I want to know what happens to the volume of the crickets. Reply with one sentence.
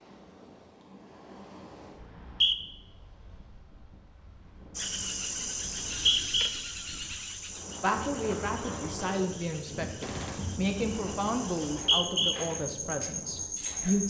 The loudness of the crickets goes down, then up.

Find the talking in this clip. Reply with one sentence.
You can hear the talking from 7.8 to 14.0 s.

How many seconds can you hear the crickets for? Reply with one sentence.
You can hear the crickets for 9 seconds altogether.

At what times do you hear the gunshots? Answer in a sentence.
The gunshots can be heard from 10.0 to 10.7 s.